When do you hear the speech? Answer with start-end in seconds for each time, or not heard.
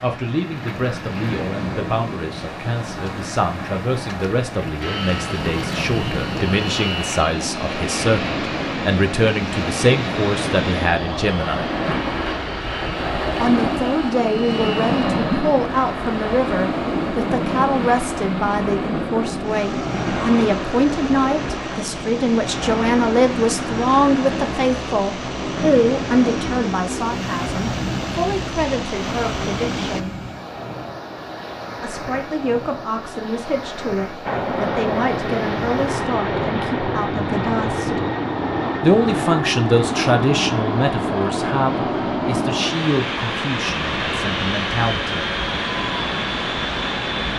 0.0-11.7, 13.4-30.1, 31.8-38.0, 38.8-45.2.